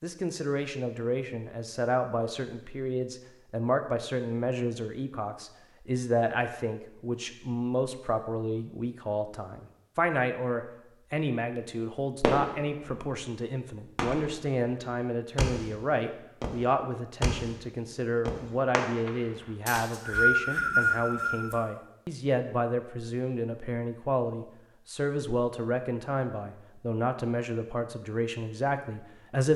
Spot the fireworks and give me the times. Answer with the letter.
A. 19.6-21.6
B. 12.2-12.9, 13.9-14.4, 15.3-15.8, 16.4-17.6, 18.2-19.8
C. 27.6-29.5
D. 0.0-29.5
B.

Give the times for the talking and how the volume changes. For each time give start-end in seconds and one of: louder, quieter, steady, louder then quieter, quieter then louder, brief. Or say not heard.
0.0-29.5 steady.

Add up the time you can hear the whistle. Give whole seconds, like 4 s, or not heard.
2 s.